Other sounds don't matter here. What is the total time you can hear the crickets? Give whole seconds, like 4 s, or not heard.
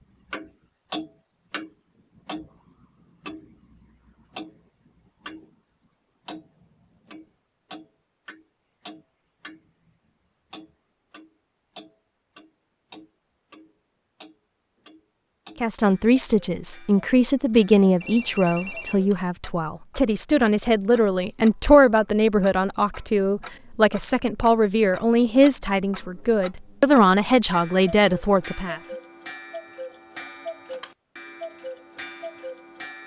not heard.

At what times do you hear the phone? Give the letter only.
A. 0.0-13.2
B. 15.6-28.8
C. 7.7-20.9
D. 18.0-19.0
D.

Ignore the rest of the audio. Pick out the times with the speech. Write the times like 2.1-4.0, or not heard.
15.6-28.8.